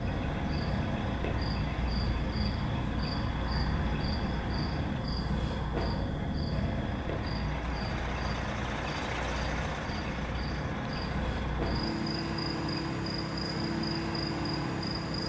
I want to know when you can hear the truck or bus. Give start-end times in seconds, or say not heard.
0.0-5.0, 6.5-15.2.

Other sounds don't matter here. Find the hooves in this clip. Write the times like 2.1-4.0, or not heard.
not heard.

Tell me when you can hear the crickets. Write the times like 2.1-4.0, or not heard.
0.0-15.2.